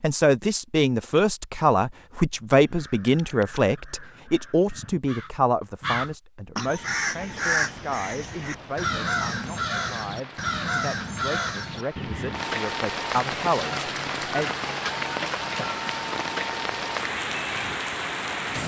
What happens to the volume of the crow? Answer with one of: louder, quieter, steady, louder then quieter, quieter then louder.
louder.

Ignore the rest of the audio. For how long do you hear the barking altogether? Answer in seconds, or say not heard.
not heard.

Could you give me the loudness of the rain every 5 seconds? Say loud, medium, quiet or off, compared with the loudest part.
off, quiet, loud, loud.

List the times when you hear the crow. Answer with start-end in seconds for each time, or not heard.
2.6-12.4.